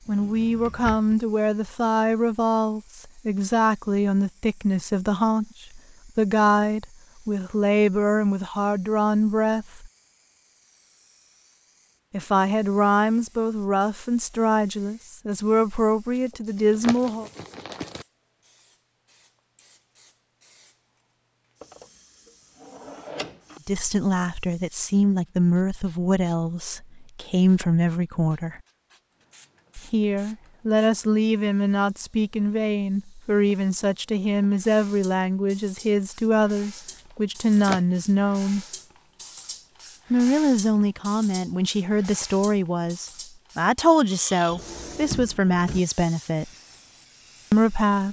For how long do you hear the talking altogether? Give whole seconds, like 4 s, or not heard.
36 s.